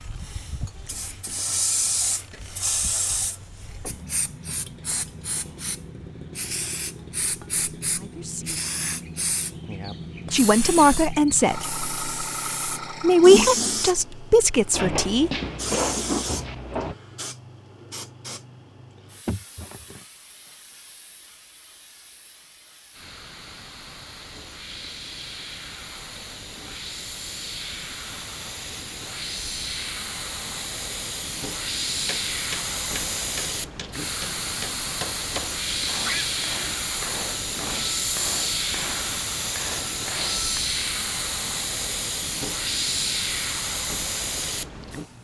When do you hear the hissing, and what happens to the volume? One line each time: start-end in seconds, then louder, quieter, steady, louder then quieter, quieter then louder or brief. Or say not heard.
0.0-45.2 quieter then louder.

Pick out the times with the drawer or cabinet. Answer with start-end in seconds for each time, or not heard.
14.7-16.9.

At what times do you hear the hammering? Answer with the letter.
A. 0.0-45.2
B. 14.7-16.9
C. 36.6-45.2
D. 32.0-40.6
D.